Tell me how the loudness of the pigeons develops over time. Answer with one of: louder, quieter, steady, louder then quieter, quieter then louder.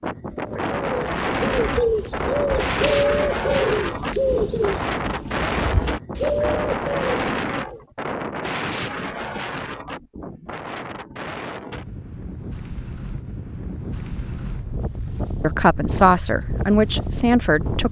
quieter then louder.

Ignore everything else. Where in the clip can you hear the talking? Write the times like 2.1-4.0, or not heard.
15.4-17.8.